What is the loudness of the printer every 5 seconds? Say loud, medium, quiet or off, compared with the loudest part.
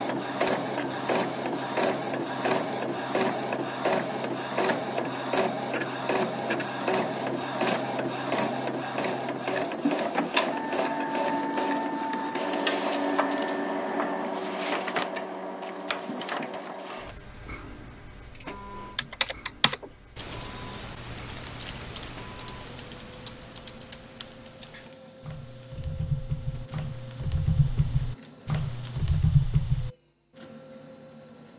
loud, loud, loud, medium, quiet, quiet, quiet.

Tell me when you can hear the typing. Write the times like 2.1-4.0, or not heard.
18.9-29.9.